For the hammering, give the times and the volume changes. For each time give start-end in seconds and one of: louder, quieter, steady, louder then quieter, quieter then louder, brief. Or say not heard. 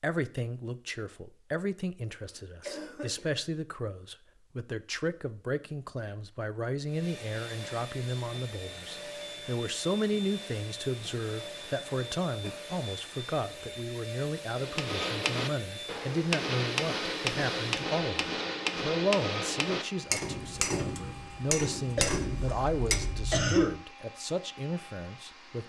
14.5-23.4 steady.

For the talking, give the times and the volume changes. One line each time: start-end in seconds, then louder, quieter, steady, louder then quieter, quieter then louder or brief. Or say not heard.
0.0-25.6 steady.